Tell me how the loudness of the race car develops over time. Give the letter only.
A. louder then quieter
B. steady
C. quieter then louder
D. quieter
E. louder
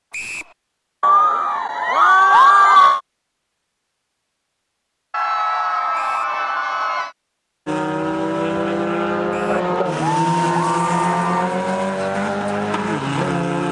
B.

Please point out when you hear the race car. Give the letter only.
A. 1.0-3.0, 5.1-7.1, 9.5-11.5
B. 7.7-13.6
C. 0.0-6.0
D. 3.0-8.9
B.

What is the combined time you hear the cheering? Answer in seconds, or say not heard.
6 s.